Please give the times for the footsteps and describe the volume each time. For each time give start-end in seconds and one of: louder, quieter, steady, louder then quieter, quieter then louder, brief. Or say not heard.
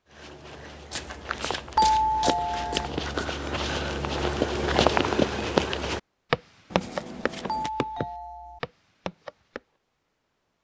0.1-9.6 louder then quieter.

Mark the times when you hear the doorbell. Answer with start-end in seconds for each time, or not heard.
1.8-2.9, 7.5-8.6.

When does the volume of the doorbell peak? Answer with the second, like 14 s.
2 s.